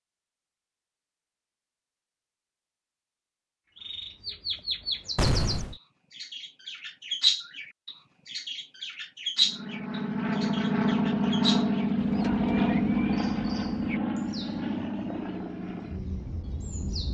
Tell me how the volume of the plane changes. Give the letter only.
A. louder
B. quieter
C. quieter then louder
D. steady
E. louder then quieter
B.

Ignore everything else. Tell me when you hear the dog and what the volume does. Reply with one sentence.
The dog can't be heard in this clip.